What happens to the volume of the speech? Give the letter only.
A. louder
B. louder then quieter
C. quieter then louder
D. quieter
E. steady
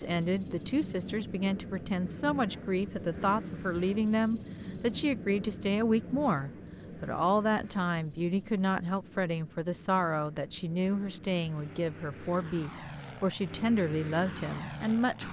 E.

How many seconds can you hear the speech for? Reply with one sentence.
The speech can be heard for 15 seconds in total.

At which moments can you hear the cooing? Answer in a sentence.
You can't hear the cooing here.